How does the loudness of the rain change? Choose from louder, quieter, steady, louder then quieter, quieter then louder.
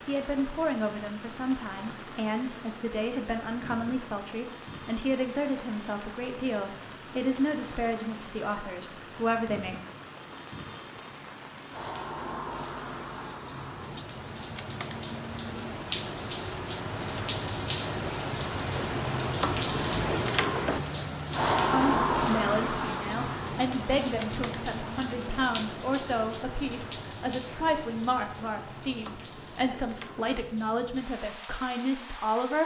louder then quieter.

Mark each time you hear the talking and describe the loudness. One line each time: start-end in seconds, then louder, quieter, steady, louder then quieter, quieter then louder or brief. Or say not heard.
0.1-9.8 steady
21.7-32.6 steady.